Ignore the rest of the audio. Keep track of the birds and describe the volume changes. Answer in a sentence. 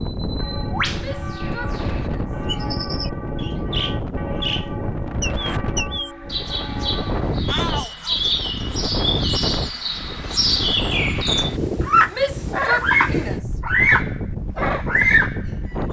The volume of the birds goes up.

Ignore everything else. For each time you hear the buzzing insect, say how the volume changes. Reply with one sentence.
You can't hear the buzzing insect here.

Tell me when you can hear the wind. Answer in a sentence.
You can hear the wind from 0.0 to 15.8 s.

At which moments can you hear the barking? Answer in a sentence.
You can't hear the barking here.